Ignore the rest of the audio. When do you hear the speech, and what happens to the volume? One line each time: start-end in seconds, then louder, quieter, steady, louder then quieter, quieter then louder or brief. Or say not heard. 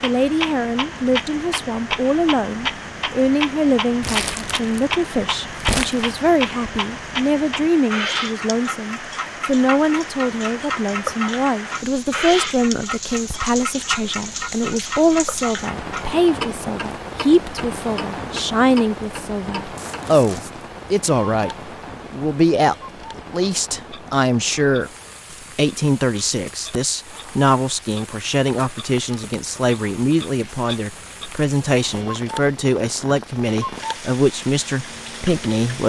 0.0-35.8 steady.